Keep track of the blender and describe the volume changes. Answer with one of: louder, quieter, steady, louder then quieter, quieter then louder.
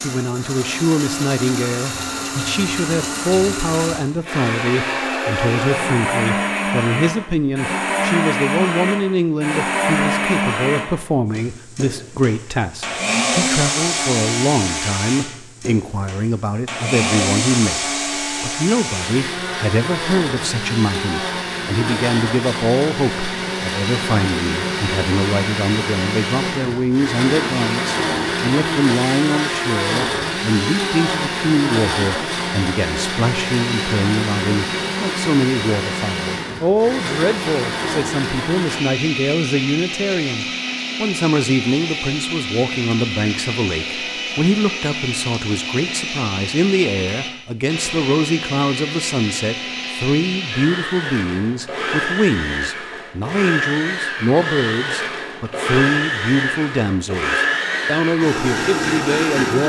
steady.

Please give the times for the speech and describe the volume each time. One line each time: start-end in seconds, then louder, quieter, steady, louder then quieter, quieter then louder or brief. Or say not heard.
0.0-59.6 steady.